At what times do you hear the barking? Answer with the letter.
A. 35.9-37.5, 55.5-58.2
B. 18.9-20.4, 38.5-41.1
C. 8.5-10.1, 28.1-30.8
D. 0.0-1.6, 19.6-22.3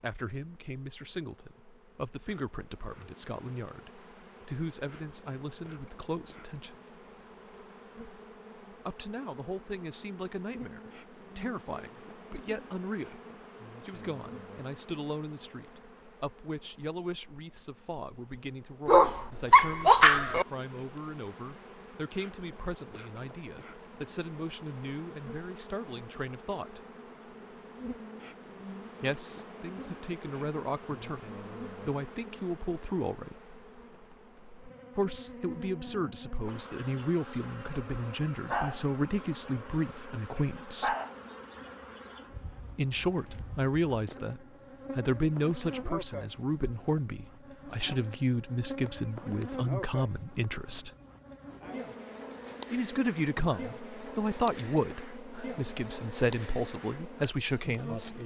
B.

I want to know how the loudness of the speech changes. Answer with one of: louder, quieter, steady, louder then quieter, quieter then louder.
louder.